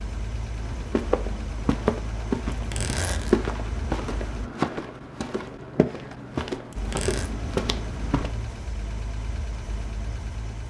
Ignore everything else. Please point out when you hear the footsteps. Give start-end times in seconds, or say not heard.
0.6-8.3.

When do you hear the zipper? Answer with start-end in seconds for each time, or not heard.
2.5-3.4, 6.7-7.3.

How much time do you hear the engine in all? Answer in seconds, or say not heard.
8 s.